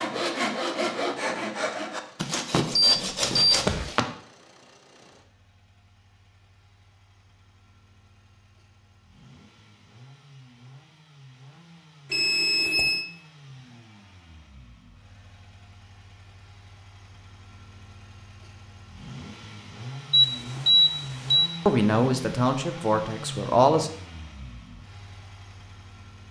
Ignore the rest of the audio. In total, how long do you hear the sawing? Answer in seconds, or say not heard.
4 s.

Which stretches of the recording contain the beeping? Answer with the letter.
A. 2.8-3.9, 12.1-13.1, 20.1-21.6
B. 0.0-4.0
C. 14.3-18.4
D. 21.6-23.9
A.